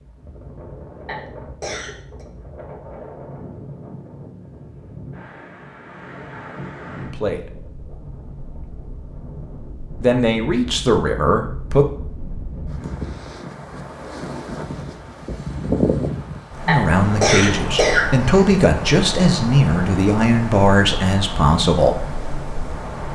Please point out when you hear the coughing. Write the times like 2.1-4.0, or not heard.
1.1-2.2, 16.6-18.4.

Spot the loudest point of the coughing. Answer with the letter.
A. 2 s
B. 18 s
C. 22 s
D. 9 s
B.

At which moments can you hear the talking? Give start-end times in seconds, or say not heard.
7.1-7.5, 10.0-11.8, 16.6-22.0.